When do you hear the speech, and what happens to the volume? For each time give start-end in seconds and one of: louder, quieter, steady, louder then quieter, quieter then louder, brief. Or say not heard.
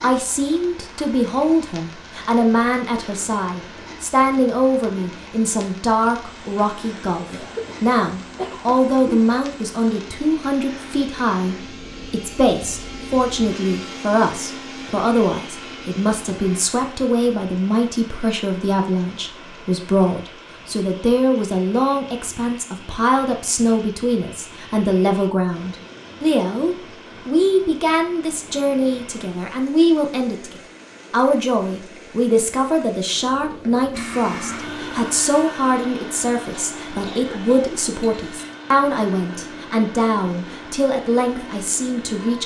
0.0-42.4 steady.